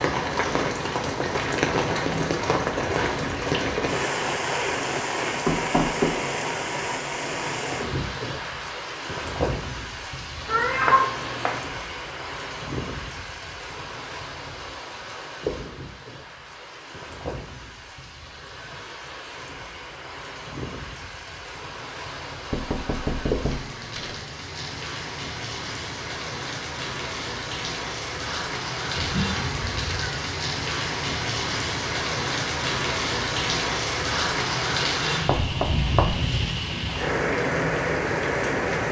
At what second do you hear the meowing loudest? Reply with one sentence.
The volume of the meowing peaks at 11 seconds.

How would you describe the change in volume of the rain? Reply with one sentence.
The volume of the rain goes down, then up.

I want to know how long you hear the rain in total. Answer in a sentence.
The rain can be heard for 39 seconds in total.